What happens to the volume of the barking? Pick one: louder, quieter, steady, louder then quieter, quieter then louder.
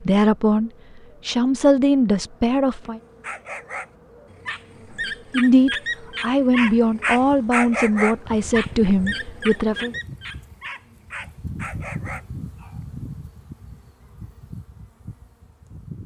louder then quieter.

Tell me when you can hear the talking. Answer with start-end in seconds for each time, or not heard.
0.0-3.0, 5.3-9.9.